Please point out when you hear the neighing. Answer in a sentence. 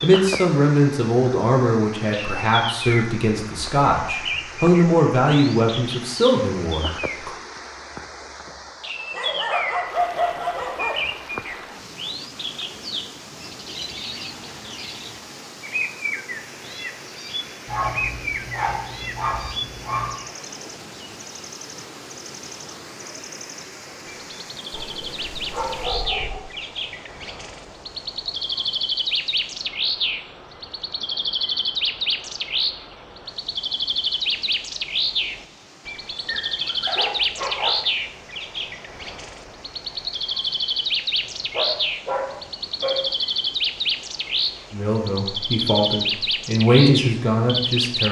The neighing can't be heard in this clip.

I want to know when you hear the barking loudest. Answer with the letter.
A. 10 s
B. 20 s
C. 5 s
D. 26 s
A.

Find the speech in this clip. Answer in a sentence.
You can hear the speech from 0.0 to 7.3 s and from 44.7 to 48.0 s.